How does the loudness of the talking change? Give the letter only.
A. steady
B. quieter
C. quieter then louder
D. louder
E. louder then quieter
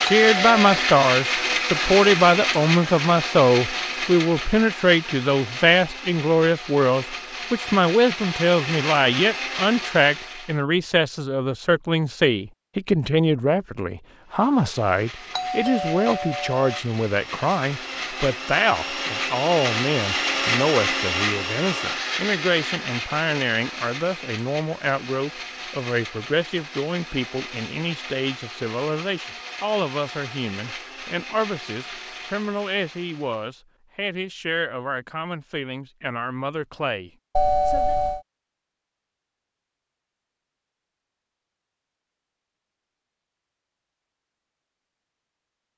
B.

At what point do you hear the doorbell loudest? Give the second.
38 s.